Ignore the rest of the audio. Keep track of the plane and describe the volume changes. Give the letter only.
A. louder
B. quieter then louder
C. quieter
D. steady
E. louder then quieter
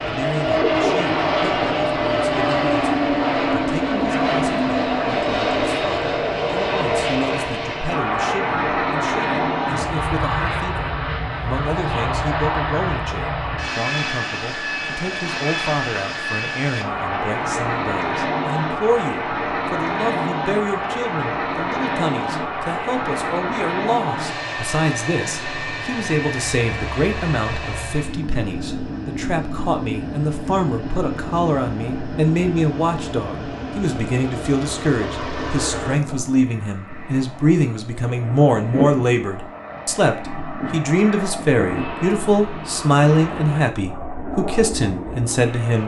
C.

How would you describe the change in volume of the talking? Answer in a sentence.
The loudness of the talking goes up.